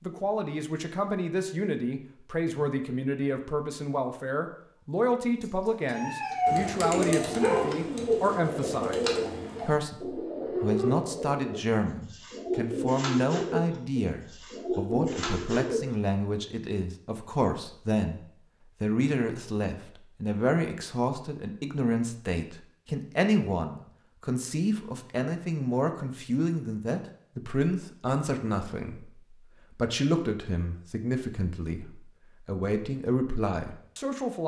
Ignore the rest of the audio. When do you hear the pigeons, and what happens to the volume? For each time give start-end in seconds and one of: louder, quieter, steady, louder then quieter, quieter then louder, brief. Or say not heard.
5.4-15.8 steady.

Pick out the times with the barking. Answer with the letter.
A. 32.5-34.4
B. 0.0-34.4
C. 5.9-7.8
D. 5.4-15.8
C.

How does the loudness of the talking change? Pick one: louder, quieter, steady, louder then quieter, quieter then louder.
steady.